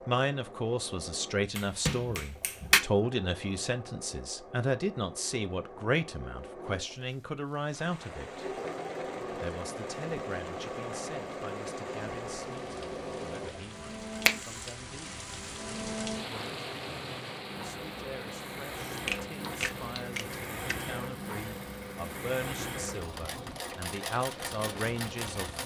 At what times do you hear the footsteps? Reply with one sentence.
You can't hear the footsteps here.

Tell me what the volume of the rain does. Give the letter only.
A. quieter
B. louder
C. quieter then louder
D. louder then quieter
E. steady
D.